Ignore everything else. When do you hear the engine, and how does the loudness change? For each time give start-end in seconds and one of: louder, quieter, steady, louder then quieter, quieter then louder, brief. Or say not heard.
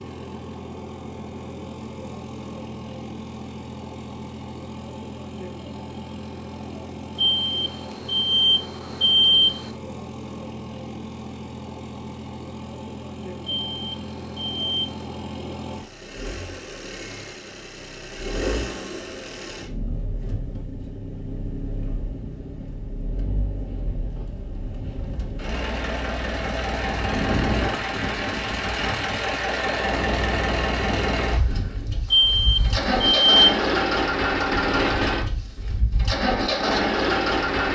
0.0-37.7 louder.